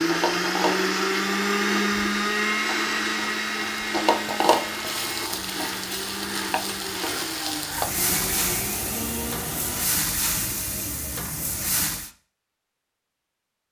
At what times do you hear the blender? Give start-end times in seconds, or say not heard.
0.0-10.1.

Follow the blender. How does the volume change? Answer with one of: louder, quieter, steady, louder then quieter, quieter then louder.
quieter.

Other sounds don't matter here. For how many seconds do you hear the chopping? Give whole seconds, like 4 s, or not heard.
not heard.